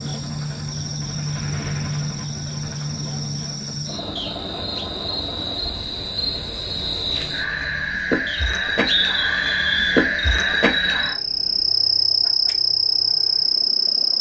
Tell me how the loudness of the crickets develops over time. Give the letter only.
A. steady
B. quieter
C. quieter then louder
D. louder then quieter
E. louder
E.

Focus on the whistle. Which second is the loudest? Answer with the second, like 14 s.
9 s.